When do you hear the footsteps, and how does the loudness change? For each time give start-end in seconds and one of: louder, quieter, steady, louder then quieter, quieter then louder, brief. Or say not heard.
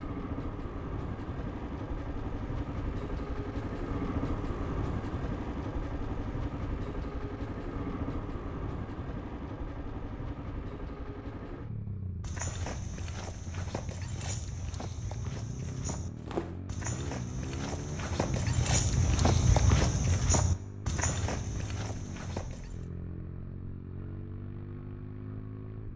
12.2-22.9 louder then quieter.